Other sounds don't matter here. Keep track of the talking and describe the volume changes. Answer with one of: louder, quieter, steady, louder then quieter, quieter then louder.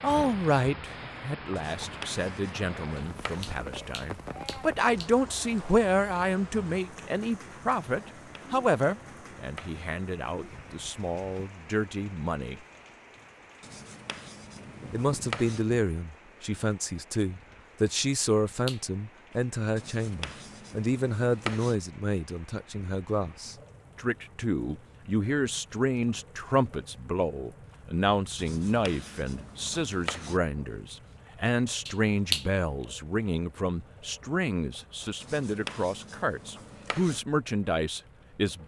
steady.